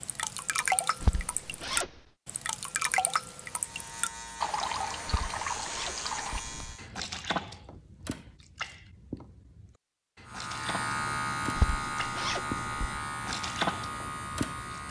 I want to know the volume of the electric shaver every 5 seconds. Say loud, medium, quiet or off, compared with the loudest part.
medium, medium, loud.